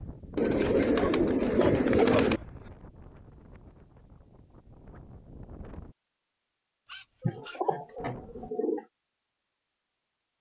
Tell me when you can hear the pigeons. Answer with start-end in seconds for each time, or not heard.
0.3-2.4, 7.2-8.8.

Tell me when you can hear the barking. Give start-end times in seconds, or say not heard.
0.9-2.7, 6.8-8.5.